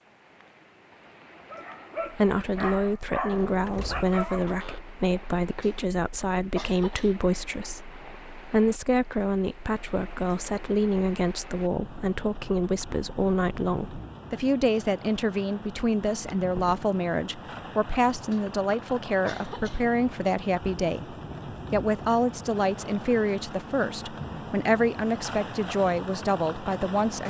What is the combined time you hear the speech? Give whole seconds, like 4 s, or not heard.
25 s.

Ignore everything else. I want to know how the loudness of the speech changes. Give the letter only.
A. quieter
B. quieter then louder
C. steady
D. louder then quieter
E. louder
C.